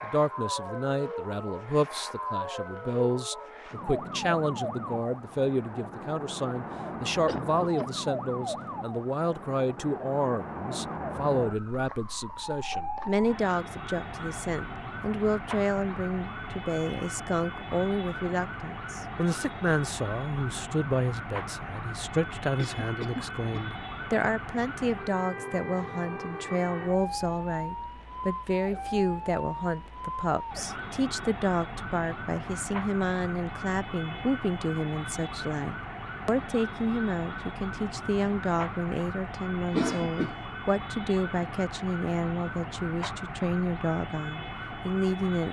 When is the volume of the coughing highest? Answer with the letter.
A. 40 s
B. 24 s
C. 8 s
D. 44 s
A.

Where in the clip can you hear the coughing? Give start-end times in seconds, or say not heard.
7.2-7.9, 22.6-23.6, 39.7-40.5.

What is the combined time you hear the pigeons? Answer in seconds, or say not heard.
not heard.